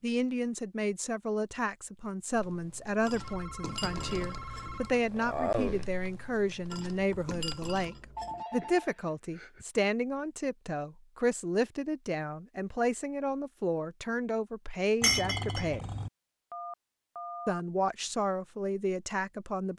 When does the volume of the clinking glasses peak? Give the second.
15 s.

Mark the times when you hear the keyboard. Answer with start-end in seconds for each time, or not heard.
2.3-7.8.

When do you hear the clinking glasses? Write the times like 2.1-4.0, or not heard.
3.0-4.8, 6.7-8.4, 15.0-16.1.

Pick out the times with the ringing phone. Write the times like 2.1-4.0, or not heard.
3.1-5.0, 8.2-9.7, 16.5-17.6.